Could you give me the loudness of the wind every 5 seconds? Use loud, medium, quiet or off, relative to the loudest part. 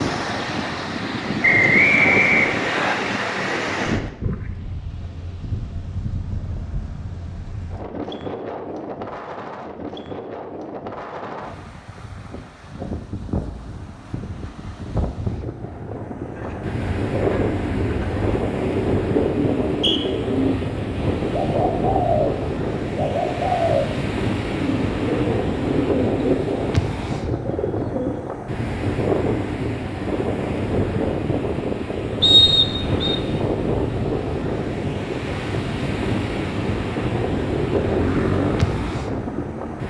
loud, medium, medium, loud, loud, loud, loud, loud.